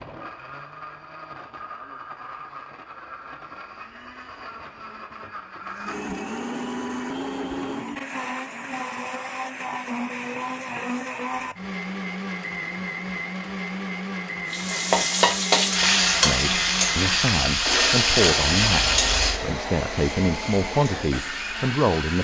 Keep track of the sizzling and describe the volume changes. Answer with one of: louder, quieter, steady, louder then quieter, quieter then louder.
quieter.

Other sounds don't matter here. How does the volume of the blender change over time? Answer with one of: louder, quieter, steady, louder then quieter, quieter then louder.
louder.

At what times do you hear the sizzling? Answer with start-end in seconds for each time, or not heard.
14.5-22.1.